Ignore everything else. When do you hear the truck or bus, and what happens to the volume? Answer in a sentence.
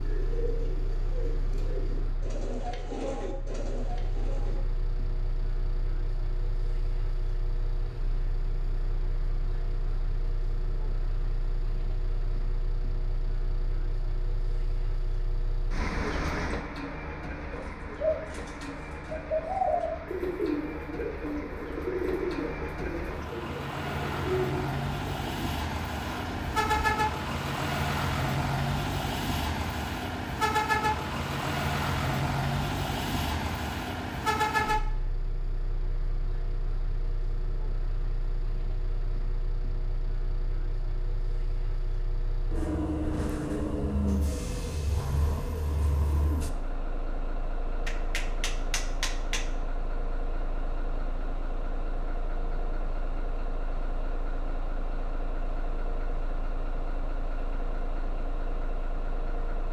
You can hear the truck or bus from 0.0 to 59.6 s, getting louder then quieter.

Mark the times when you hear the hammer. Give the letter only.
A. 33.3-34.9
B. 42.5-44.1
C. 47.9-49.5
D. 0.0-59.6
C.